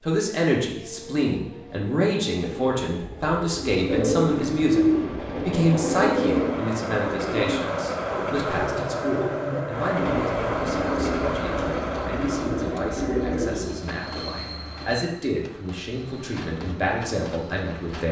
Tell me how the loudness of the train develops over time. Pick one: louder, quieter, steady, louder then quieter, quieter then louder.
louder then quieter.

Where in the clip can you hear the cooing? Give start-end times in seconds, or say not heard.
3.7-13.8.